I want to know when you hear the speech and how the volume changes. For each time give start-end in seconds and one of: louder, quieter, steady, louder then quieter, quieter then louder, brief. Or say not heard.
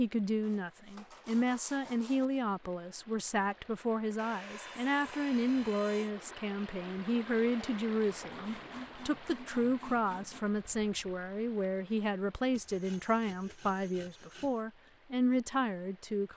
0.0-16.3 steady.